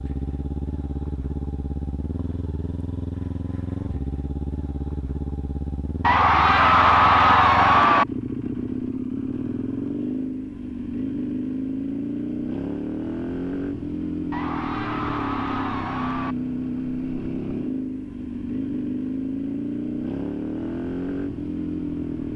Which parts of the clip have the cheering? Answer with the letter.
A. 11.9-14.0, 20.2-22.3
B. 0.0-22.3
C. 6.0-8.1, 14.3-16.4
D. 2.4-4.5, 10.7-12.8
C.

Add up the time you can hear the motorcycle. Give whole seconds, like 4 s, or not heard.
22 s.